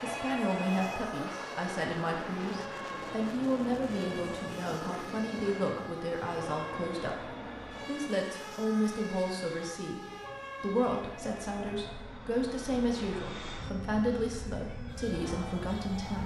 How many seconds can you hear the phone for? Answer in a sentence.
The phone can be heard for 2 seconds in total.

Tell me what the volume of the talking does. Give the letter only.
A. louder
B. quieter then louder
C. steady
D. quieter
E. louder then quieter
C.